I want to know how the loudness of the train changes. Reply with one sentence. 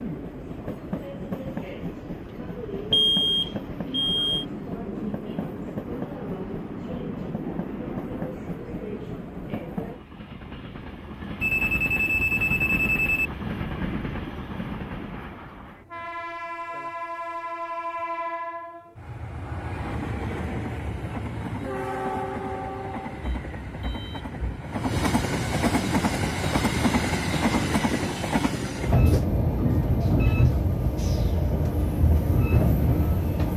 The volume of the train goes up.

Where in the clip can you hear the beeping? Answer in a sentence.
The beeping can be heard from 2.9 to 4.5 s, from 11.4 to 13.3 s and from 23.2 to 24.6 s.